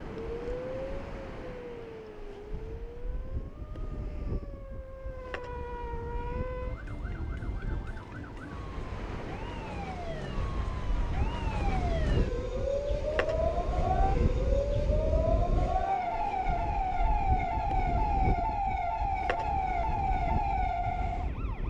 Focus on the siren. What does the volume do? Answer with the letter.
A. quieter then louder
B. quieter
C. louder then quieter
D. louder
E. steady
D.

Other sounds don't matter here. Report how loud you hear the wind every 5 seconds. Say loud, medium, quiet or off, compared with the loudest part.
medium, medium, loud, loud, loud.